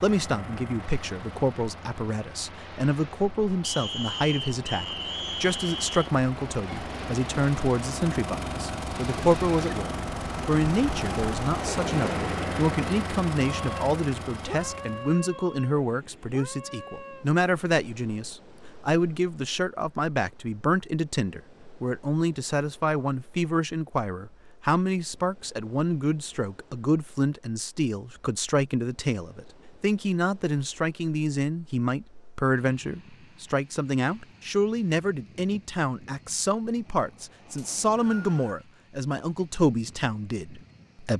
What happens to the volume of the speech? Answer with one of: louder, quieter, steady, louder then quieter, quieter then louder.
steady.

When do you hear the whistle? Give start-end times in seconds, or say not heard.
3.6-6.1, 37.5-38.6.